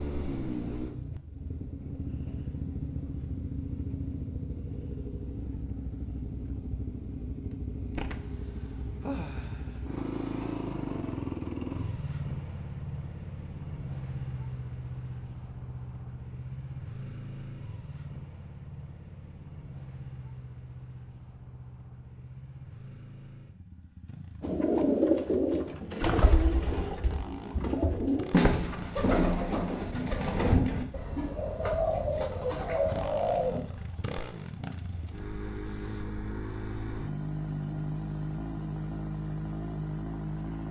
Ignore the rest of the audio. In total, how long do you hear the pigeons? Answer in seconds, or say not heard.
9 s.